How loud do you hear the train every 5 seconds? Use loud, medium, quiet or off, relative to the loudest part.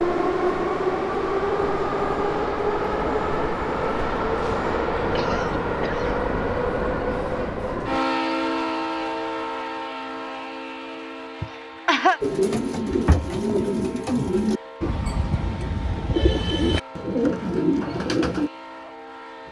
loud, loud, quiet, quiet.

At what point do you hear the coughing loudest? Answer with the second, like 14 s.
12 s.